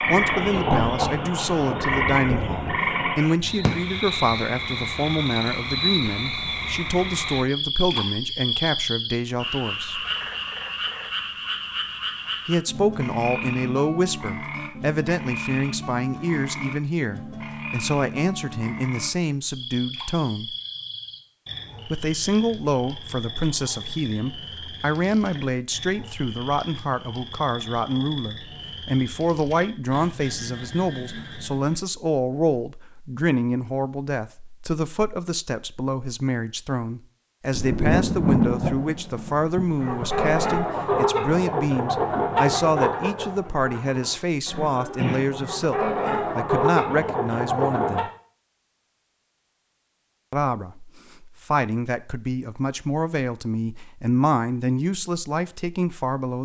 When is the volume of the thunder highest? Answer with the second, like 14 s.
38 s.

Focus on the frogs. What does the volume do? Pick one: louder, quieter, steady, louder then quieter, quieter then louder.
quieter.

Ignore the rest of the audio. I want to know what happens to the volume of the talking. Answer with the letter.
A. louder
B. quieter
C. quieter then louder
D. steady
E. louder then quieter
D.